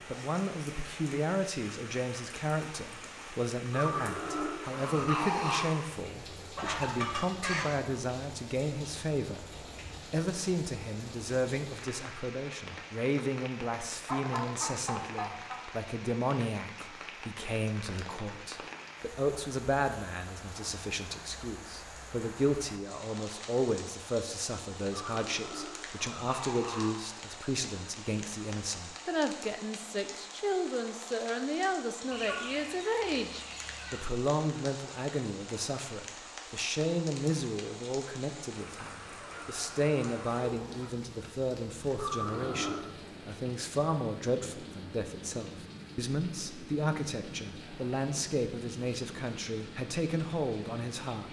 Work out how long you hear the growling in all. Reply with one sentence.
You can hear the growling for 5 seconds altogether.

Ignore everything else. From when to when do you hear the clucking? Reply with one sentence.
You can hear the clucking from 6.0 to 7.7 s, from 13.9 to 15.7 s, from 32.1 to 34.1 s and from 39.2 to 41.0 s.